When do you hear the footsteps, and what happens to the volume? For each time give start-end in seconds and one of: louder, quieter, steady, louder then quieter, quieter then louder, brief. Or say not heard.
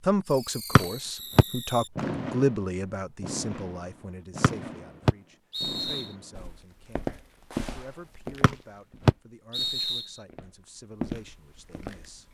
6.3-12.2 quieter then louder.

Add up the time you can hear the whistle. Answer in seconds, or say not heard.
4 s.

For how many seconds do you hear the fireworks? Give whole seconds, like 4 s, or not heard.
8 s.